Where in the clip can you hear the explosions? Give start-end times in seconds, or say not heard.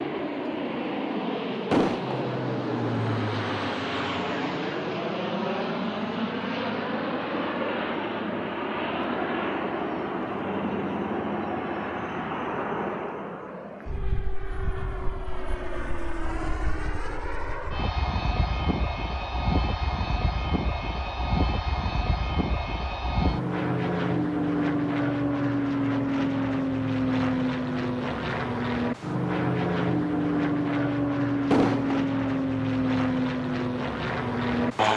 1.7-2.2, 31.5-32.0.